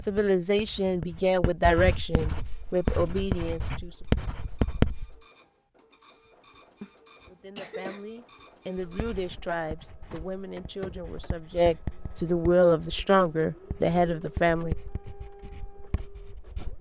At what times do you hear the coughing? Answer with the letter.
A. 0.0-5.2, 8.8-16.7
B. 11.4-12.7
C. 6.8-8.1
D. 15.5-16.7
C.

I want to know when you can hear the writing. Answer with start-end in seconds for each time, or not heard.
0.0-5.2, 8.8-16.7.